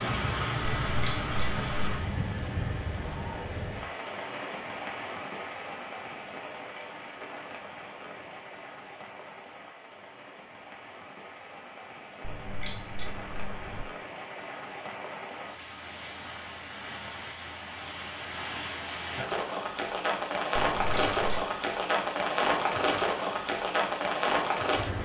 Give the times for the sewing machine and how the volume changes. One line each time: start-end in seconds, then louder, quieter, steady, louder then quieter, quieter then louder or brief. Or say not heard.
not heard.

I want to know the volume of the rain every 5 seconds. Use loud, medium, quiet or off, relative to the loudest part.
medium, quiet, quiet, medium, loud.